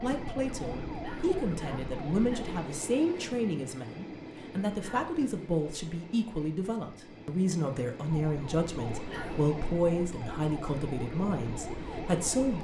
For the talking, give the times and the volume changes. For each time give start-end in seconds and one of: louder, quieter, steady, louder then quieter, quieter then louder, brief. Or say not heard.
0.0-12.5 steady.